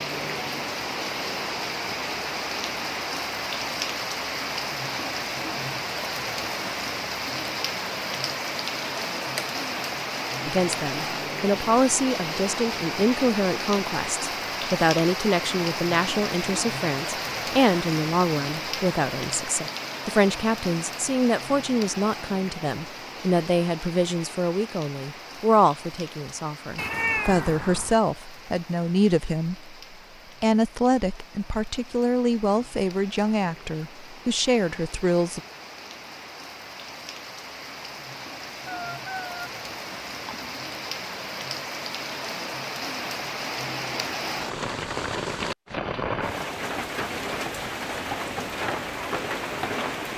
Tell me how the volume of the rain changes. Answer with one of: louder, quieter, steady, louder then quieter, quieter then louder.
quieter then louder.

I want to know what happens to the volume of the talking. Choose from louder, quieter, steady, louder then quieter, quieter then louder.
steady.